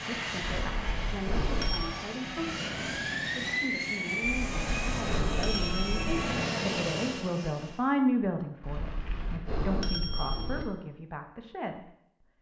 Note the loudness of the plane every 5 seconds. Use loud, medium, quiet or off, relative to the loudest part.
loud, loud, off.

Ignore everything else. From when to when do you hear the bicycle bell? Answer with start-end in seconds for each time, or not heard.
0.5-1.9, 4.2-6.2, 8.6-10.7.